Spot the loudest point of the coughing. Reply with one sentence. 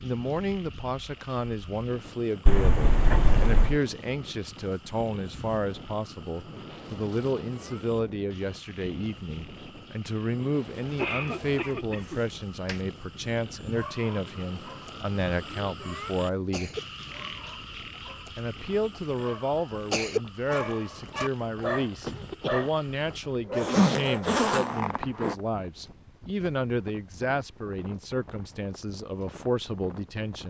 The loudest moment of the coughing is at 11 seconds.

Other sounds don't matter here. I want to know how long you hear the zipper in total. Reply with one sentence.
You can hear the zipper for 5 seconds altogether.